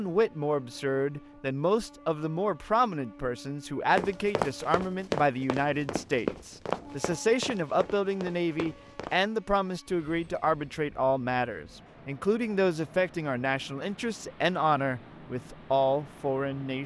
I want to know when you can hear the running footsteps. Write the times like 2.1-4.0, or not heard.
4.0-9.2.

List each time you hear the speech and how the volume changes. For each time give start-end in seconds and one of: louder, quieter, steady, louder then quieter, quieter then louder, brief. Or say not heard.
0.0-16.8 steady.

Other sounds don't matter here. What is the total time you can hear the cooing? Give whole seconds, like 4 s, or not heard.
not heard.